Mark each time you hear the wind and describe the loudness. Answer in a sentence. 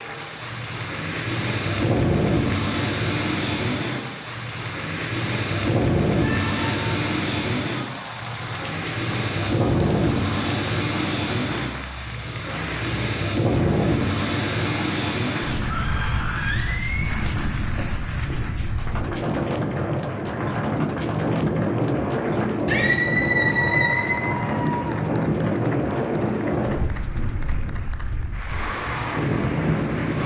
You can hear the wind from 0.0 to 30.2 s, at a steady volume.